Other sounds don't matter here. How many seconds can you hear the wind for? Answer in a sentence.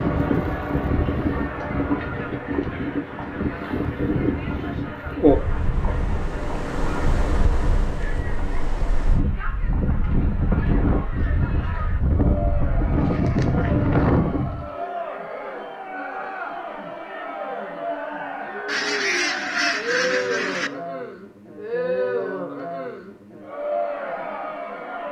You can hear the wind for 15 seconds altogether.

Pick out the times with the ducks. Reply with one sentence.
You can hear the ducks from 18.6 to 20.7 s.